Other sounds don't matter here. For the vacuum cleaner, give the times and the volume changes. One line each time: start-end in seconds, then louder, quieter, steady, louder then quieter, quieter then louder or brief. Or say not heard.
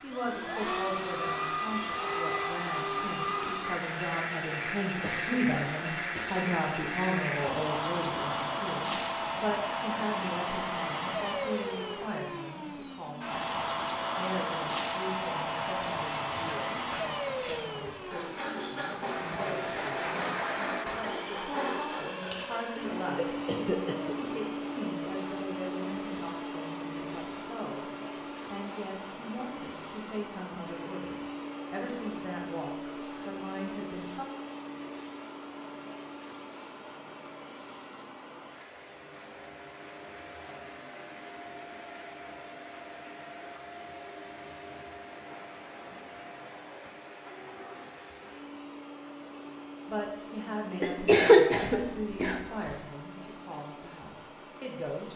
0.0-55.1 quieter.